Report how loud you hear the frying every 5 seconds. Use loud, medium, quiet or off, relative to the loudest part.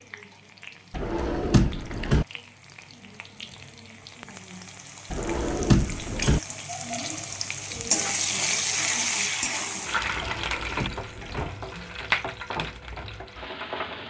quiet, loud, loud.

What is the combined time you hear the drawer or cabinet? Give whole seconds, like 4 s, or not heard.
4 s.